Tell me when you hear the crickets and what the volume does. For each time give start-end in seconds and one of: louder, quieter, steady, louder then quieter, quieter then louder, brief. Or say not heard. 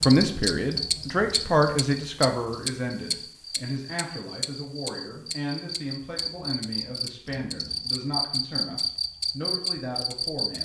0.0-10.6 quieter then louder.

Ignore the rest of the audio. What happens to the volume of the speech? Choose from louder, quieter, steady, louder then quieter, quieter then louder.
quieter.